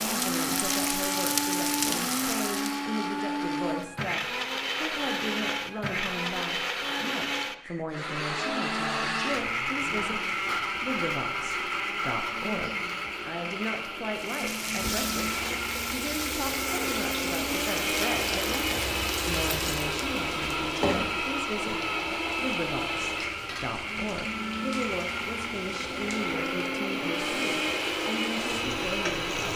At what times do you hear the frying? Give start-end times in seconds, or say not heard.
0.0-2.9, 14.2-29.5.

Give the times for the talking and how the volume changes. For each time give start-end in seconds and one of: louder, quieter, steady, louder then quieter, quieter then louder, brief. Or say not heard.
0.0-29.5 steady.